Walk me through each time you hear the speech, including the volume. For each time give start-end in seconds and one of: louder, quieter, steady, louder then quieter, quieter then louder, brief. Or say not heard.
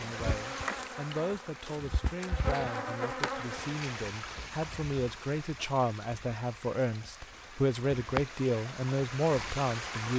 0.0-10.1 louder.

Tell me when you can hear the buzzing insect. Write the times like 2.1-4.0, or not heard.
0.0-3.9.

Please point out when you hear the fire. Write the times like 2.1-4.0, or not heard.
not heard.